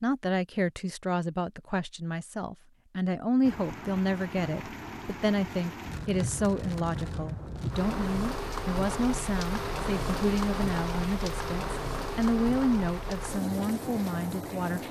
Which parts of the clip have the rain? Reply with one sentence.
The rain can be heard from 3.4 to 14.8 s.